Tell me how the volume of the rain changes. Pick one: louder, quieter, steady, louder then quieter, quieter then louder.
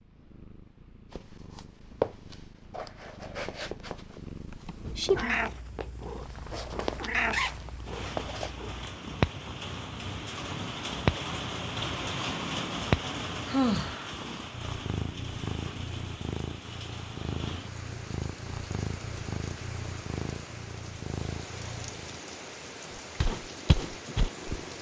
louder then quieter.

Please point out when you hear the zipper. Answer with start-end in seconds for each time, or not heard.
7.3-8.2.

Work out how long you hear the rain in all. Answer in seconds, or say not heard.
19 s.